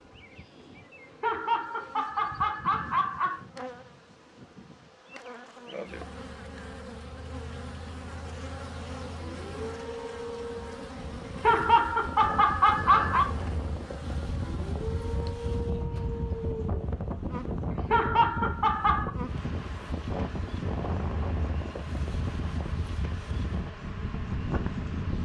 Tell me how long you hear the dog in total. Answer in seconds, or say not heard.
4 s.